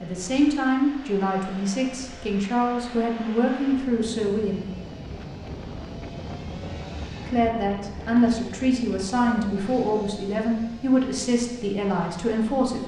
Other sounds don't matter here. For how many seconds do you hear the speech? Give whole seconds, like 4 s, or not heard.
10 s.